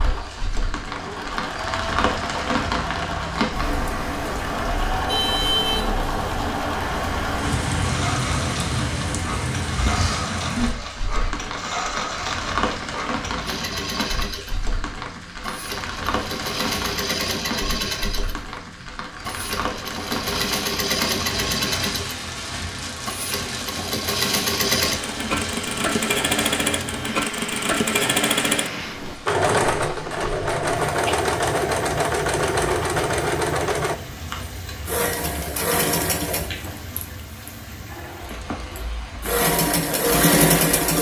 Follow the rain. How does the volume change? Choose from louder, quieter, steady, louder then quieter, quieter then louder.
quieter.